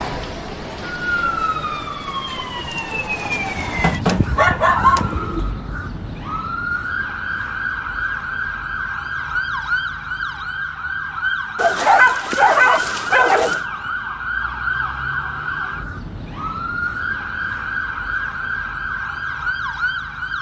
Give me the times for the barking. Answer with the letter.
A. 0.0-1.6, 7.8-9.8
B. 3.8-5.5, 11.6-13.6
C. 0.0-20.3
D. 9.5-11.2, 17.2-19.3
B.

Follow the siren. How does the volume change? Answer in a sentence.
The volume of the siren stays about the same.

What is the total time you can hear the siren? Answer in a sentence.
The siren can be heard for 20 seconds in total.